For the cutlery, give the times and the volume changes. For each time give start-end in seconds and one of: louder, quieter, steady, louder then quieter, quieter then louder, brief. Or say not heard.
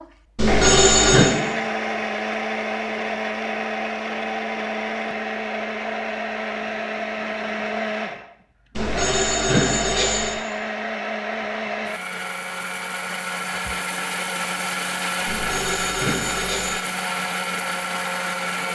not heard.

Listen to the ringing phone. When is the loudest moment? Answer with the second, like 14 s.
1 s.